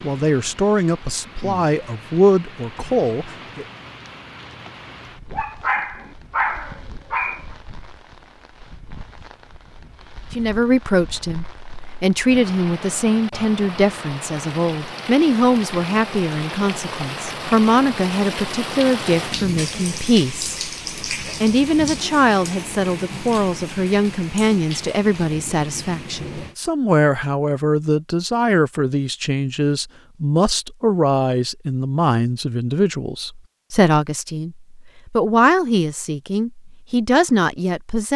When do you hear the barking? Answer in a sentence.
The barking can be heard from 5.3 to 7.5 s.